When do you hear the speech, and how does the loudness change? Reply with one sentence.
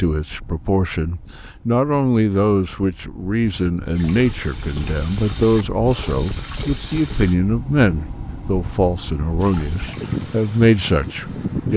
The speech can be heard from 0.0 to 11.7 s, at a steady volume.